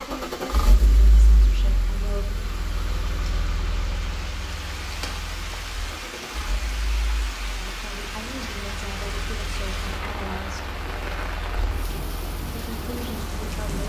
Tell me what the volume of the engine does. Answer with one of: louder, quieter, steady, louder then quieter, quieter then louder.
quieter.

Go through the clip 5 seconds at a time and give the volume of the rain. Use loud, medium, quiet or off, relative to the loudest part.
medium, loud, loud.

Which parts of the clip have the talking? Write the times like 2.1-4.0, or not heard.
0.0-2.5, 7.7-10.8, 12.7-13.8.